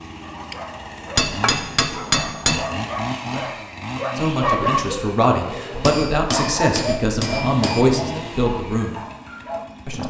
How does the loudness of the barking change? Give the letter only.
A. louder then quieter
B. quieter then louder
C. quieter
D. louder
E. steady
A.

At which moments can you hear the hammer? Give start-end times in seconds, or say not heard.
1.1-2.6, 5.8-7.8.